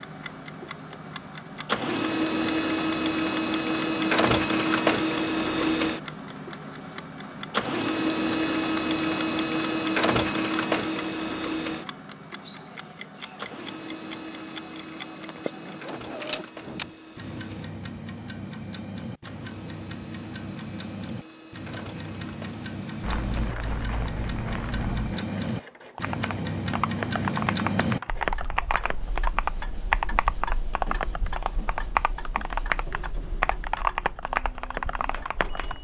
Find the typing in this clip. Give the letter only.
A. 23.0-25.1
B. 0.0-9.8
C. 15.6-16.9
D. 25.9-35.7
D.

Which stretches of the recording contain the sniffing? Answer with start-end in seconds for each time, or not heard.
15.6-16.9.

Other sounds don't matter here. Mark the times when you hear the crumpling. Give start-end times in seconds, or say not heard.
23.0-25.1.